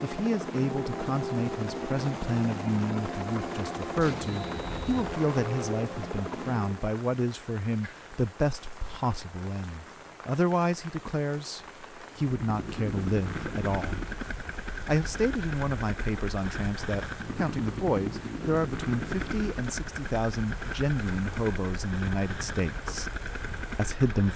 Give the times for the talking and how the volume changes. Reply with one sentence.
You can hear the talking from 0.0 to 14.1 s, at a steady volume; from 14.8 to 23.1 s, at a steady volume; and briefly from 23.8 to 24.3 s.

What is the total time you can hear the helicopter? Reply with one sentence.
You can hear the helicopter for 19 seconds altogether.